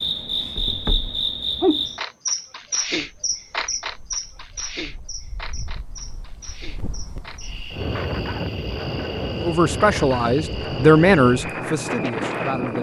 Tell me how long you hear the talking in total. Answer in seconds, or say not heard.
3 s.